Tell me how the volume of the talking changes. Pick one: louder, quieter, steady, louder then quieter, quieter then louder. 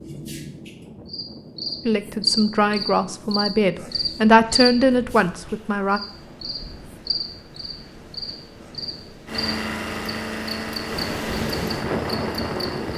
louder then quieter.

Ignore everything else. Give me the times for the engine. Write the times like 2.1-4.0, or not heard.
9.2-12.9.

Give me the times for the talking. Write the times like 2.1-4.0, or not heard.
1.9-6.0.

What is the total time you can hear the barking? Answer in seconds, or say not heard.
not heard.